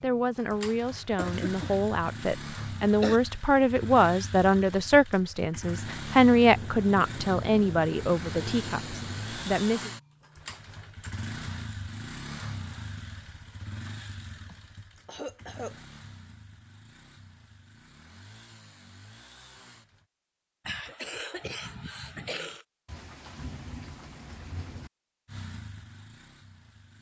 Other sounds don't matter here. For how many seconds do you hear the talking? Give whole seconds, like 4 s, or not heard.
10 s.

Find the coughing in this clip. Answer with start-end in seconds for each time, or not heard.
1.1-1.8, 2.6-3.2, 14.4-15.8, 20.6-22.6.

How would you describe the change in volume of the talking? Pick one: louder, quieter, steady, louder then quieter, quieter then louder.
louder then quieter.